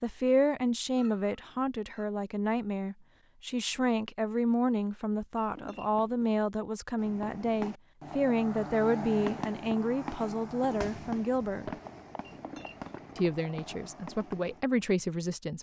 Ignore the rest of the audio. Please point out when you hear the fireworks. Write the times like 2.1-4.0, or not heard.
7.0-14.7.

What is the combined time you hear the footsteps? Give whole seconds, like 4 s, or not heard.
not heard.